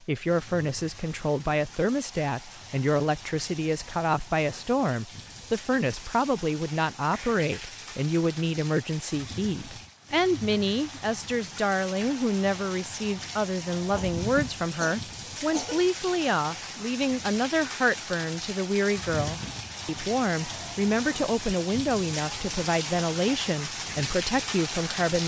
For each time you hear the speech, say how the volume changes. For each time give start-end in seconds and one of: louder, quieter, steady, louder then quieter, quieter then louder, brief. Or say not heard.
0.0-25.2 steady.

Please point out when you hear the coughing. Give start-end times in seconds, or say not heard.
7.1-7.8, 13.8-15.8.